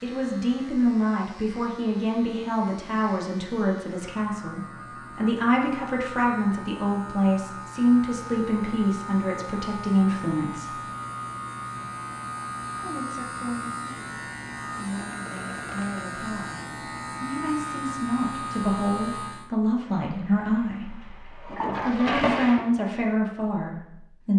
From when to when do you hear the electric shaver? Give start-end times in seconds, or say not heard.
0.0-19.5.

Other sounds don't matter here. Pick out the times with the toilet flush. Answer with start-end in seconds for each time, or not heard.
19.9-22.6.